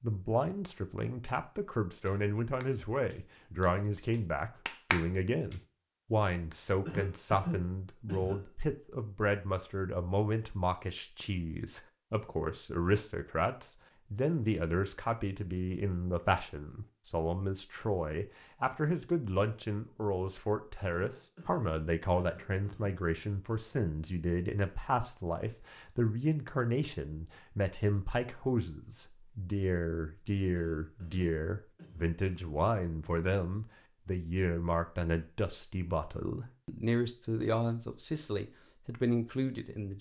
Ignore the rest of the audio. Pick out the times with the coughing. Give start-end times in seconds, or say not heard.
6.8-8.5, 20.9-23.6, 30.6-32.5.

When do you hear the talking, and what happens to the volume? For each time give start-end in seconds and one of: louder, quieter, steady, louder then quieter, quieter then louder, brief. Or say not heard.
0.0-39.9 steady.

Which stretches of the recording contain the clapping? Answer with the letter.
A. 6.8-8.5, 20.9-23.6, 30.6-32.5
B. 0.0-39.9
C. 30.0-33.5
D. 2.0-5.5
D.